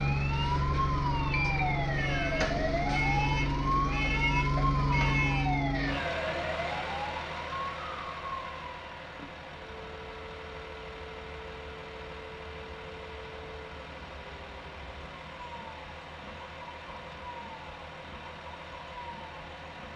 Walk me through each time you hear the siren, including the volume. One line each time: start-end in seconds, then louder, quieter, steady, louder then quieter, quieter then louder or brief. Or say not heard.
0.0-19.9 quieter.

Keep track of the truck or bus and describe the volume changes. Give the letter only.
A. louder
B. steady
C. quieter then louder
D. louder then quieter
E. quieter
E.